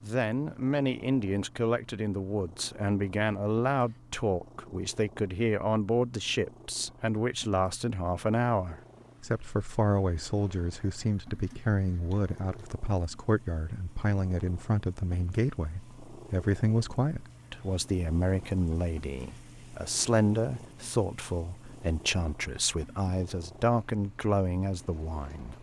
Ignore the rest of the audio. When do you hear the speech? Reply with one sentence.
The speech can be heard from 0.0 to 25.5 s.